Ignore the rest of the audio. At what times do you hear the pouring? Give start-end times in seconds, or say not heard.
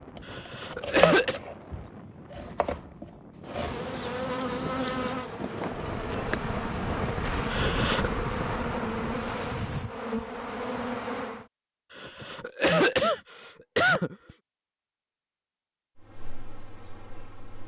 not heard.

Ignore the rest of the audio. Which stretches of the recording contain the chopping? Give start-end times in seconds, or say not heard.
0.1-3.8.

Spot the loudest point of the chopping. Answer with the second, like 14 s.
1 s.